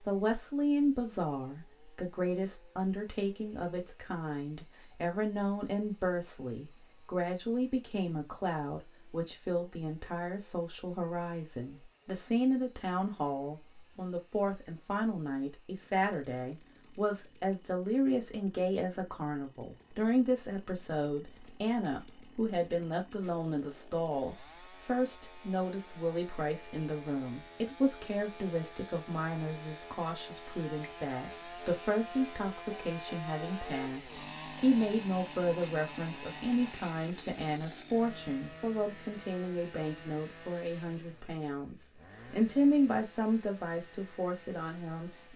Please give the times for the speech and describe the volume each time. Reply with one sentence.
The speech can be heard from 0.1 to 45.3 s, at a steady volume.